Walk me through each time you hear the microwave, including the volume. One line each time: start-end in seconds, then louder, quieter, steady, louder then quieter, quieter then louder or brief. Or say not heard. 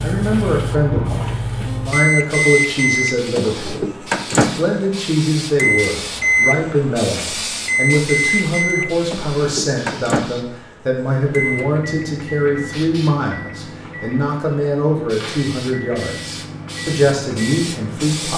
1.9-18.3 quieter.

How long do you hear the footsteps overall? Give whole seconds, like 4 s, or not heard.
not heard.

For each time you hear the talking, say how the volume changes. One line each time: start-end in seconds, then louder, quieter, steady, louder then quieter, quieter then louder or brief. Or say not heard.
0.0-18.3 steady.